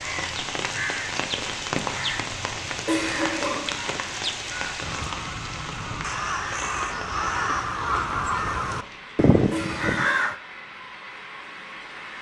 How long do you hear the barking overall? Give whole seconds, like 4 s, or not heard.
not heard.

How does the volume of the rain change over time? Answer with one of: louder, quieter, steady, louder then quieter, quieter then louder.
quieter.